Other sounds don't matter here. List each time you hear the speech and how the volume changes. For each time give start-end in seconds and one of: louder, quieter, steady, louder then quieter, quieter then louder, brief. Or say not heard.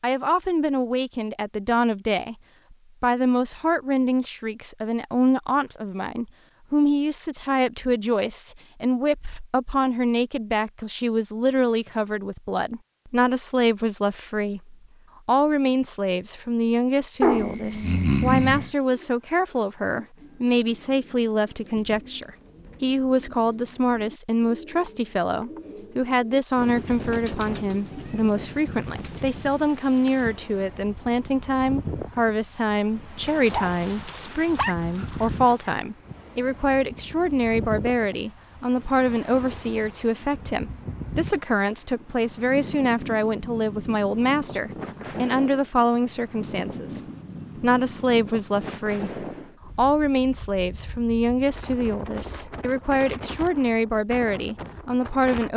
0.0-2.4 brief
3.0-55.5 steady.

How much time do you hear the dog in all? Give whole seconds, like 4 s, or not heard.
4 s.